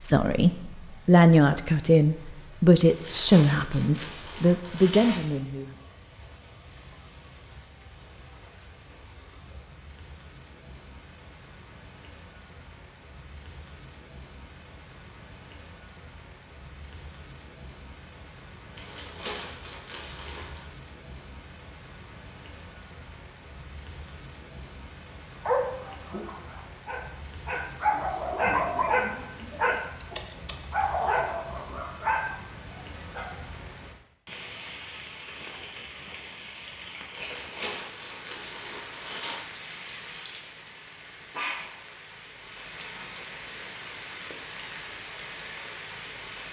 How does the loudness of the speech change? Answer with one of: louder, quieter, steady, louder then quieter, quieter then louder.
steady.